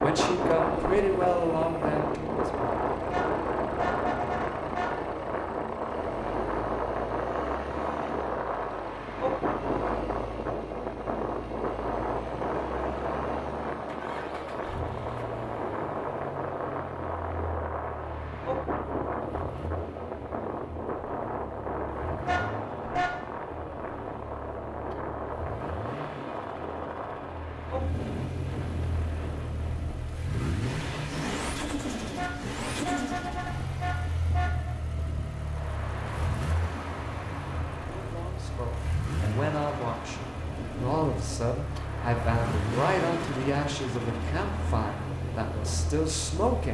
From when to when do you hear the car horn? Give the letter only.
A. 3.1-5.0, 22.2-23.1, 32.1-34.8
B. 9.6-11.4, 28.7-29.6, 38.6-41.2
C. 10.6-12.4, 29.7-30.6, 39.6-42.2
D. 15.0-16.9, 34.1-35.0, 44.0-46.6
A.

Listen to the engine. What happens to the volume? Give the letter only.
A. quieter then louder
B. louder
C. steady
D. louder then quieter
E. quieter
B.